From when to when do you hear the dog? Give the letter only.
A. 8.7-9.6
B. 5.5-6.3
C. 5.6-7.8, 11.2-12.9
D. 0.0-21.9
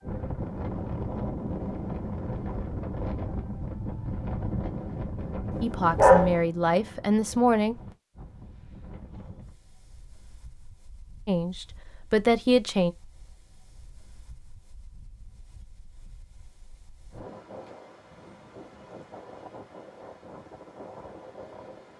B.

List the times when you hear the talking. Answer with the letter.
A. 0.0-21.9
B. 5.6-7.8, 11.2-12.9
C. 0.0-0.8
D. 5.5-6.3
B.